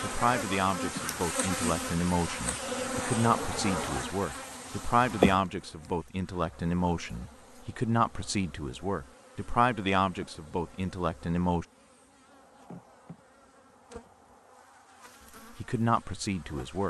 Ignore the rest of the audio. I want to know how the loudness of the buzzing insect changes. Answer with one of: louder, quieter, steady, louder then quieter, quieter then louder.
quieter.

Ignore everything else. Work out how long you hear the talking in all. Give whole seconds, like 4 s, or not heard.
13 s.